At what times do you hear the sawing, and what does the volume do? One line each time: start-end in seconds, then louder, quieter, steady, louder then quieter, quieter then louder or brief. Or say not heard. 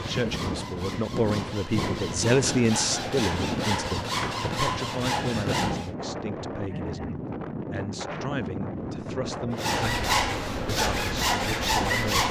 0.0-6.0 louder
9.5-12.2 brief.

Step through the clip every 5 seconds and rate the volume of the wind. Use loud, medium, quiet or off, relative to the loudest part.
loud, loud, medium.